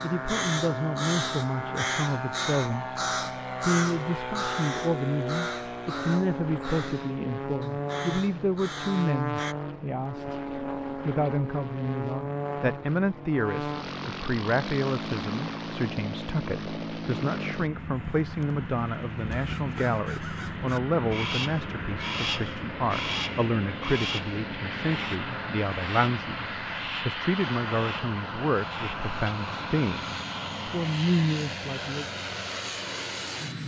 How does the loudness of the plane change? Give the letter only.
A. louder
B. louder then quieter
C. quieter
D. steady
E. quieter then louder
D.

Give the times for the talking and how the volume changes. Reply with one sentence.
The talking can be heard briefly from 0.0 to 3.0 s; and from 3.6 to 32.0 s, at a steady volume.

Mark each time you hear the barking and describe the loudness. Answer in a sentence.
The barking can't be heard in this clip.